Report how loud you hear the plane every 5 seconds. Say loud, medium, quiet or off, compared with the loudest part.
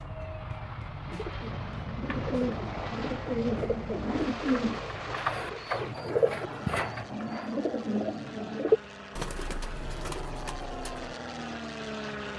loud, medium, loud.